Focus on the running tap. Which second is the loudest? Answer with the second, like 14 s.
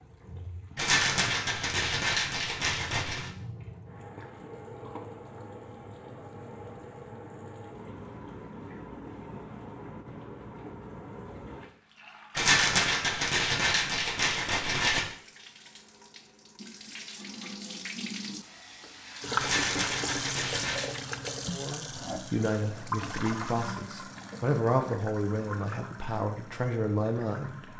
20 s.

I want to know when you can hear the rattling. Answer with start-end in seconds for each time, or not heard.
0.8-3.3, 12.3-15.1, 19.4-20.9.